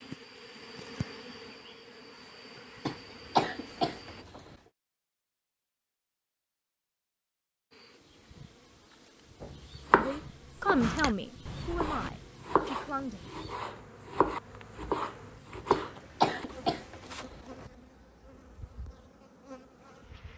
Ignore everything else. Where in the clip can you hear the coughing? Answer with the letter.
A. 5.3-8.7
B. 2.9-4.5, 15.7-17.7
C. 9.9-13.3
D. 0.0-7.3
B.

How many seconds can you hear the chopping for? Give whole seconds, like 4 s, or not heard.
7 s.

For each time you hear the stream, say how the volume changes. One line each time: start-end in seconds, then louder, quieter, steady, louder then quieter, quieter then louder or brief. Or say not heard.
not heard.